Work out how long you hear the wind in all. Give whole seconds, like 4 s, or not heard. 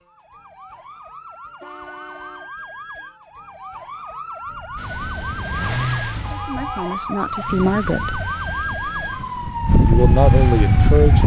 7 s.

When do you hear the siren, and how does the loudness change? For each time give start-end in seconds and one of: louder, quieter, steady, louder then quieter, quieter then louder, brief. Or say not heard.
0.0-11.2 louder.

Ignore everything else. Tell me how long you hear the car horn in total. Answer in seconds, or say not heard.
2 s.